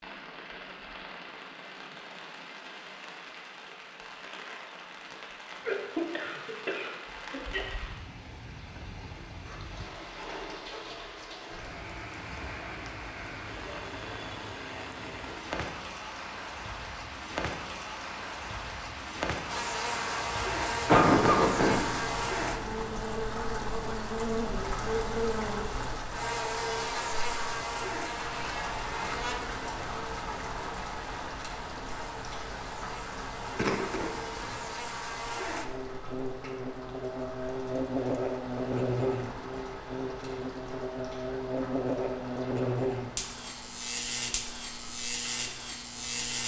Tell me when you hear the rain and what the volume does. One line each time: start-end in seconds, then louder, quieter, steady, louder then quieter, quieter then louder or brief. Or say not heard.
0.0-46.4 louder then quieter.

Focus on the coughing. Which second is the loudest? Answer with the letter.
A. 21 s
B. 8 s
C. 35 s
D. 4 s
A.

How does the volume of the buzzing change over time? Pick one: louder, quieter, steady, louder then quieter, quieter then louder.
quieter then louder.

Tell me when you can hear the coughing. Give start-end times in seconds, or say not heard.
5.7-7.7, 20.9-21.9, 33.5-34.5.